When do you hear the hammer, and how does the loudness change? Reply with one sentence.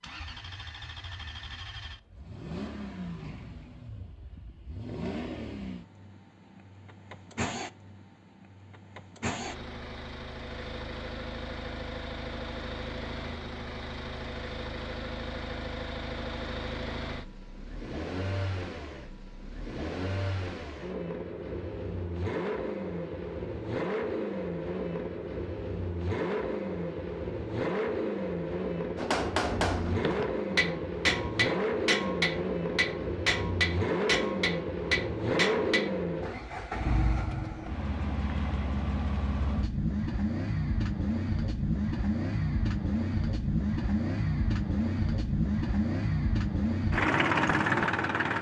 You can hear the hammer from 28.9 to 35.9 s, at a steady volume.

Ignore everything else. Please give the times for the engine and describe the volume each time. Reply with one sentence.
The engine can be heard from 0.0 to 48.3 s, getting louder.